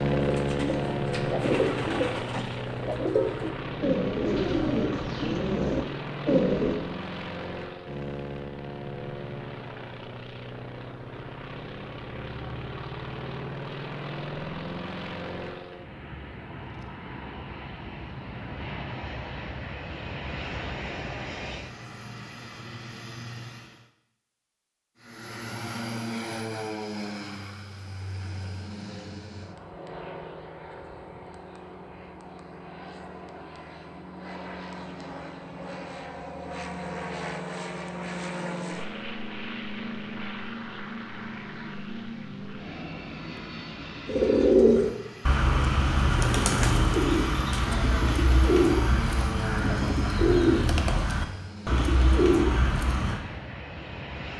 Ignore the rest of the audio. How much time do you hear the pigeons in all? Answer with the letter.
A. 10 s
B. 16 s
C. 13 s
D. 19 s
B.